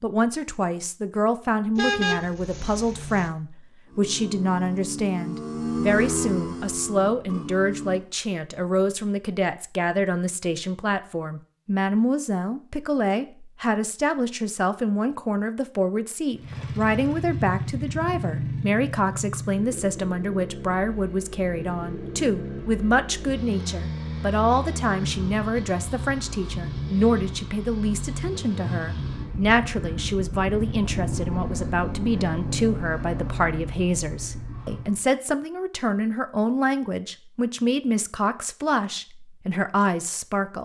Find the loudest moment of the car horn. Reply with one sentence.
The loudest moment of the car horn is at 2 seconds.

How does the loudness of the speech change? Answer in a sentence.
The loudness of the speech stays about the same.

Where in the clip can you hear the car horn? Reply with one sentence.
You can hear the car horn from 1.8 to 3.3 s.